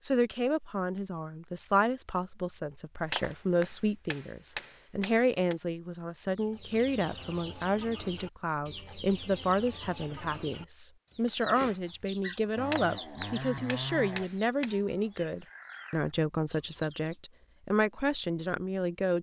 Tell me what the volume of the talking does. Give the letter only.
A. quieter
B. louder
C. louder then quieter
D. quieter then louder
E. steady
E.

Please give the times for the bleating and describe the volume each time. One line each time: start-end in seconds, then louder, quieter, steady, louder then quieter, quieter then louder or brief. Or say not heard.
not heard.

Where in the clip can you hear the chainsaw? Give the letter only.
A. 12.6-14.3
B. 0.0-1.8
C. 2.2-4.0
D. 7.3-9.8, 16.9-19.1
A.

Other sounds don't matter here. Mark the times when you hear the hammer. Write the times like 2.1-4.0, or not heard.
3.1-5.6, 12.7-14.8.